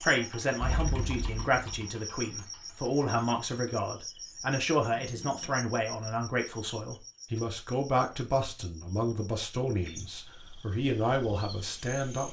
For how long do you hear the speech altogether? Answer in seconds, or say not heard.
12 s.